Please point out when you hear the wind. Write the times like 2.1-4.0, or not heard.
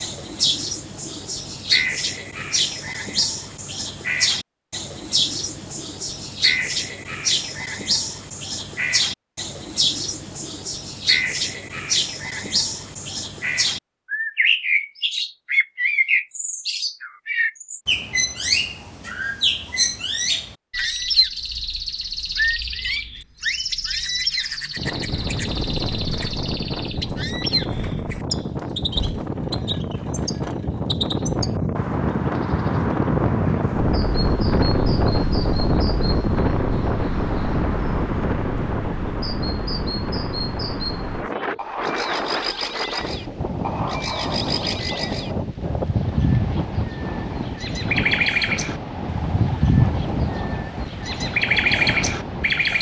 24.8-52.7.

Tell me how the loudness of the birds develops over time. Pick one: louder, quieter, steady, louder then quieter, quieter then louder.
quieter then louder.